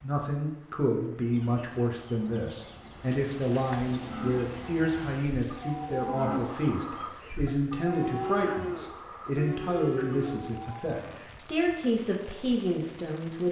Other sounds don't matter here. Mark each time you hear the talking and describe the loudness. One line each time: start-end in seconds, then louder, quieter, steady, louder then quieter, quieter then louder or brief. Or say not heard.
0.0-13.4 steady.